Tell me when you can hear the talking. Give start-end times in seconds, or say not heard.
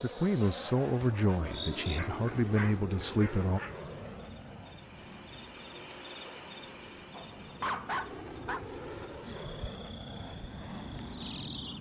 0.0-3.6.